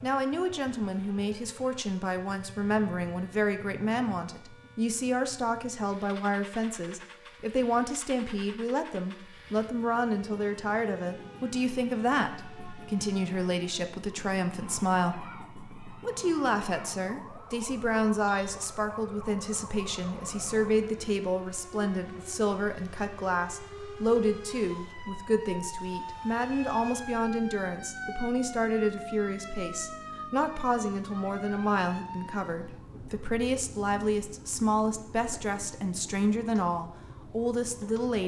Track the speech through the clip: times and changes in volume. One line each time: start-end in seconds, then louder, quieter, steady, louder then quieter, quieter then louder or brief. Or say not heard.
0.0-38.2 steady.